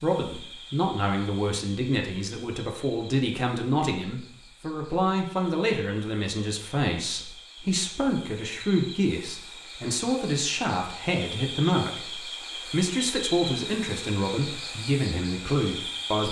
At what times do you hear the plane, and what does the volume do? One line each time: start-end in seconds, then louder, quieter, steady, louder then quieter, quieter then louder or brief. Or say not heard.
not heard.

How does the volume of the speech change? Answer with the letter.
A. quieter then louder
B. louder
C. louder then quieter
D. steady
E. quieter
D.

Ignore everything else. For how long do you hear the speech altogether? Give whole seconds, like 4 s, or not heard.
16 s.